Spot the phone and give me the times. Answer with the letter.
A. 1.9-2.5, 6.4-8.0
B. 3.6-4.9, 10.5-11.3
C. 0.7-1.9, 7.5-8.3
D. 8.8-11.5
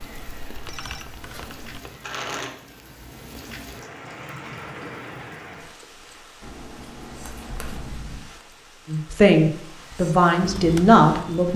C.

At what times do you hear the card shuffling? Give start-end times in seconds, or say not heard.
1.9-2.5, 6.4-8.0.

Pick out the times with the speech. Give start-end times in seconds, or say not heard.
8.8-11.5.